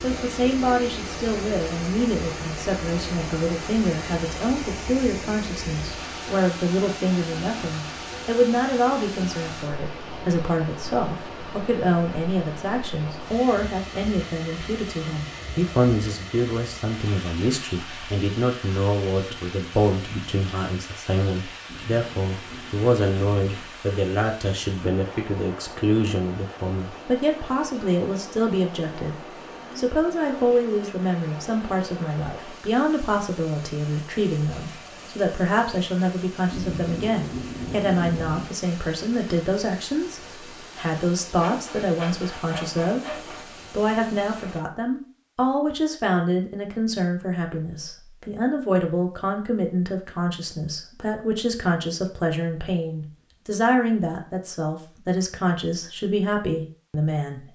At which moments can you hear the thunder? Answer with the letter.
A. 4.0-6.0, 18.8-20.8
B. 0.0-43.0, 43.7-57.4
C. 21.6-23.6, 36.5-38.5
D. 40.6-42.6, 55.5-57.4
C.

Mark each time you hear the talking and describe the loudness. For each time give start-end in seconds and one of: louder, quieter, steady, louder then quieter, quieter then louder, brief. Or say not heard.
0.0-43.0 steady
43.7-57.4 steady.